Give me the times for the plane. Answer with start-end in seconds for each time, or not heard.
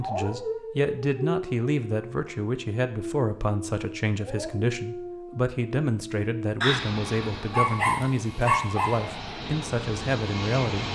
6.7-10.8.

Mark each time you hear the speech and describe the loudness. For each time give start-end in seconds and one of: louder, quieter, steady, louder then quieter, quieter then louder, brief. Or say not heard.
0.0-10.8 steady.